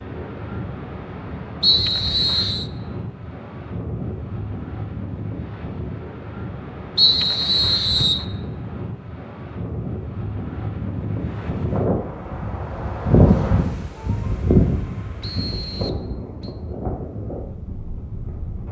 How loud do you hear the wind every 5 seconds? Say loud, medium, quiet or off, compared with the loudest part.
medium, medium, loud, medium.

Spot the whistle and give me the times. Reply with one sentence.
You can hear the whistle from 1.6 to 2.6 s, from 7.0 to 8.2 s and from 15.2 to 16.6 s.